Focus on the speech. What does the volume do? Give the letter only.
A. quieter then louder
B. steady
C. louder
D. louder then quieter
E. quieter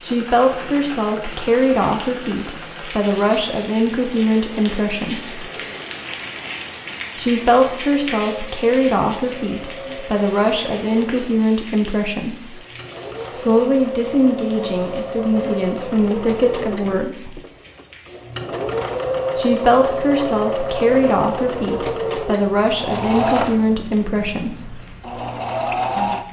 B.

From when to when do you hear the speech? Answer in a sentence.
The speech can be heard from 0.0 to 5.5 s, from 7.2 to 12.6 s, from 13.3 to 17.4 s and from 19.4 to 24.9 s.